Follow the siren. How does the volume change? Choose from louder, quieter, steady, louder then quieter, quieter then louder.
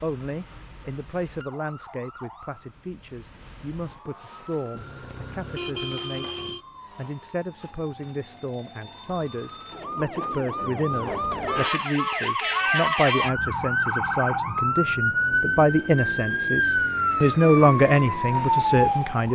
louder.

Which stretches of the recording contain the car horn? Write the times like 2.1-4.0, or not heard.
4.8-6.6, 11.3-12.7.